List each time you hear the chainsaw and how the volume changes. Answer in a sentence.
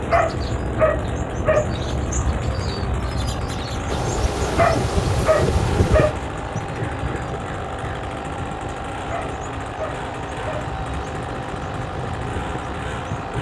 You can hear the chainsaw from 0.0 to 13.3 s, at a steady volume.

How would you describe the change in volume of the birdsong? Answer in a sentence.
The volume of the birdsong goes down.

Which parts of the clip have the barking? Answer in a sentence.
You can hear the barking from 0.1 to 1.7 s, from 4.5 to 6.2 s and from 9.1 to 10.7 s.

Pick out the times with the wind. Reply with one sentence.
You can hear the wind from 3.9 to 13.3 s.